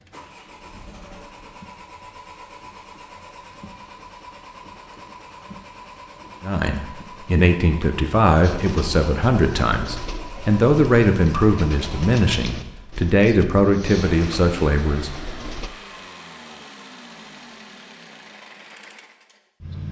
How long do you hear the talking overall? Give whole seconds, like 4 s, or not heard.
9 s.